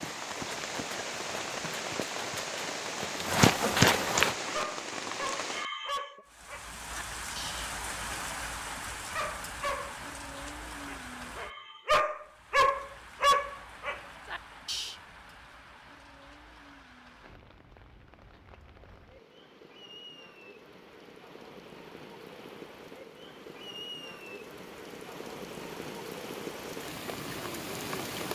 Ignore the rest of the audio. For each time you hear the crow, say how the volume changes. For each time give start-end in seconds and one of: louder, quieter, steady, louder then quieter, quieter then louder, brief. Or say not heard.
not heard.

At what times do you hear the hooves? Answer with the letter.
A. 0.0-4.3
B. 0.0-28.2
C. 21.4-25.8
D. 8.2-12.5
A.